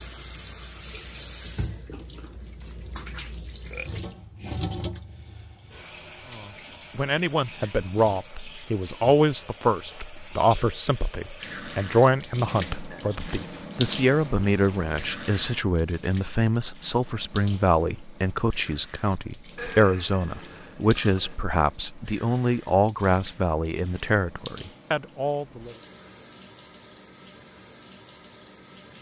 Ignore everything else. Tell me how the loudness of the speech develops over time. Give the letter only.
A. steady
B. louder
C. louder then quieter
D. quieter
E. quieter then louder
A.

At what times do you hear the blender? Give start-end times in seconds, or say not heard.
not heard.